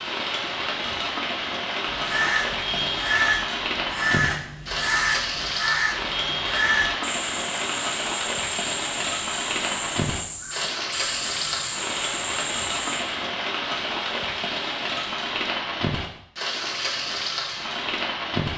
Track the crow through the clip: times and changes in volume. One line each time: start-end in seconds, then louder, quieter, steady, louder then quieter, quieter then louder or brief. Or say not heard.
1.9-13.1 quieter.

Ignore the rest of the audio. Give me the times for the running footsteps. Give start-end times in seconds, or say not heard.
not heard.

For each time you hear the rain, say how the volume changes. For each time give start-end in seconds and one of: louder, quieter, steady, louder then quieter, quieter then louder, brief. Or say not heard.
0.0-18.5 steady.